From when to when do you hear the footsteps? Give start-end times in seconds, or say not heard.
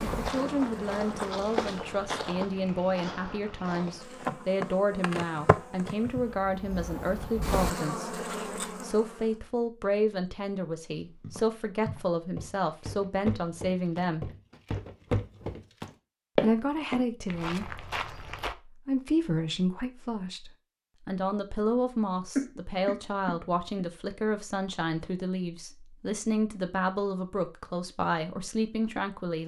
0.1-4.0, 11.0-18.6.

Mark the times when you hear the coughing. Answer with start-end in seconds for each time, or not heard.
22.4-23.9.